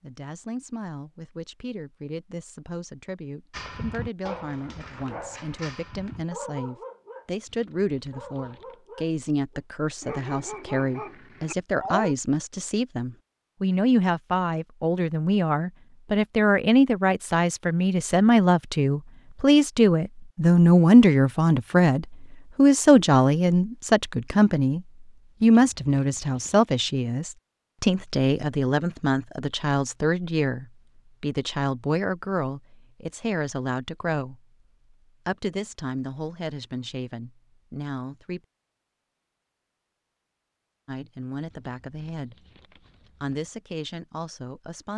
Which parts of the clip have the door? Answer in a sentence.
You can't hear the door here.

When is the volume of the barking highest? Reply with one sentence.
The volume of the barking peaks at 12 seconds.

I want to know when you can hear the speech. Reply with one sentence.
You can hear the speech from 0.0 to 34.4 s, from 35.2 to 38.4 s, from 40.9 to 42.4 s and from 43.2 to 44.9 s.